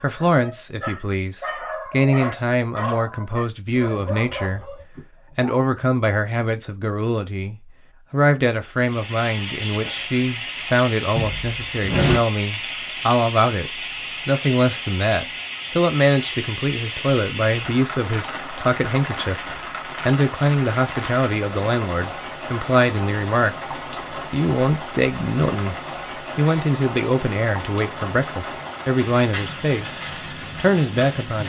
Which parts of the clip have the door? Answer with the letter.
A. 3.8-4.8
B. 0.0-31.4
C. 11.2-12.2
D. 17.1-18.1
C.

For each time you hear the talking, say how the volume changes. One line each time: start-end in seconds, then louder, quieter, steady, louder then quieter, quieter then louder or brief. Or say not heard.
0.0-31.4 steady.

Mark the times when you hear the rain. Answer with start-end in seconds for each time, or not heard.
8.8-31.4.